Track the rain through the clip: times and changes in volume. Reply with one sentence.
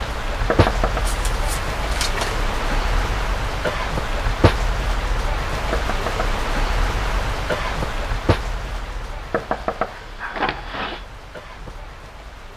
The rain can be heard from 0.0 to 12.5 s, getting quieter.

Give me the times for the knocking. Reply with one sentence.
The knocking can be heard from 0.5 to 1.1 s, from 5.7 to 6.3 s and from 9.3 to 11.1 s.